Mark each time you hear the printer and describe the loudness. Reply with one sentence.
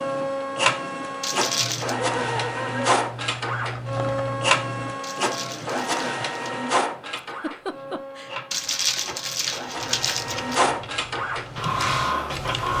You can hear the printer from 0.0 to 12.7 s, getting quieter then louder.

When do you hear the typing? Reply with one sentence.
The typing can be heard from 1.8 to 5.0 s and from 10.0 to 12.7 s.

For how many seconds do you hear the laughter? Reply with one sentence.
You can hear the laughter for 2 seconds altogether.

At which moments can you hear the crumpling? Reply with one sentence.
You can hear the crumpling from 1.2 to 1.9 s, from 5.0 to 6.5 s and from 8.5 to 10.6 s.